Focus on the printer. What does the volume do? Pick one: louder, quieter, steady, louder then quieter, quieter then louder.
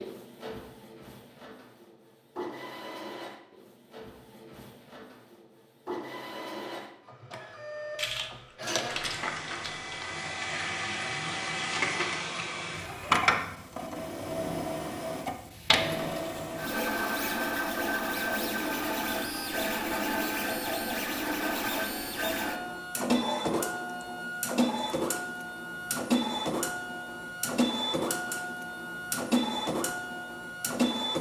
louder.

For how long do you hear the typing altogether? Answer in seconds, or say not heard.
2 s.